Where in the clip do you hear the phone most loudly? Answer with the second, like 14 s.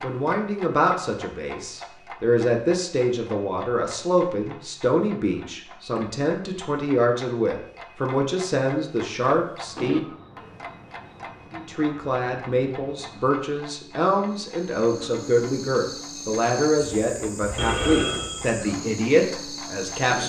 18 s.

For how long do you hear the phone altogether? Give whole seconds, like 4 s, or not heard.
2 s.